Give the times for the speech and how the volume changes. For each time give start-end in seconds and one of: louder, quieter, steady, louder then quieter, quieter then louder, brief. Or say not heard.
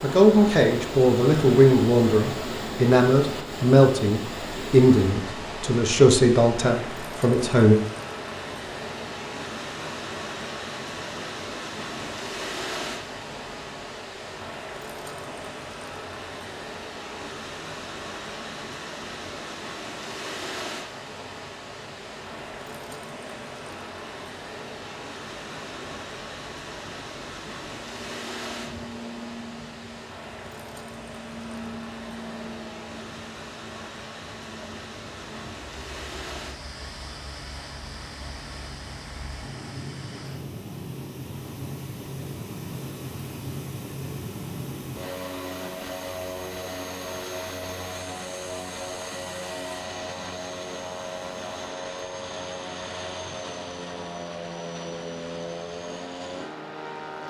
0.0-7.8 steady.